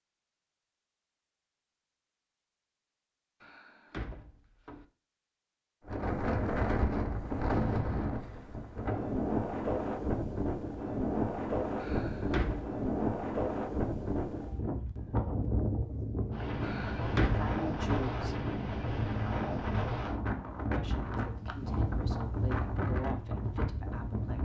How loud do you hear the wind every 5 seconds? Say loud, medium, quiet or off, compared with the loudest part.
off, loud, loud, loud, loud.